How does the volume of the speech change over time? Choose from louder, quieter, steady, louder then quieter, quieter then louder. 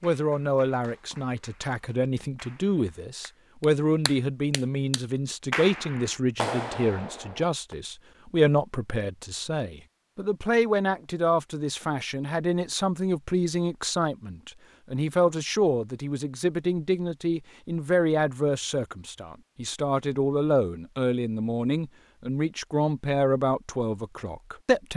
steady.